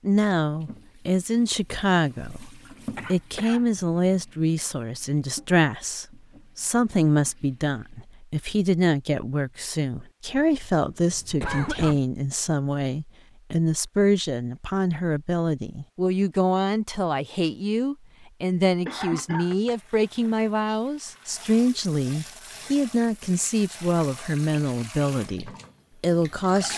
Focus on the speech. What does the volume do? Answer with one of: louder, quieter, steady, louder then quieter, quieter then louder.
steady.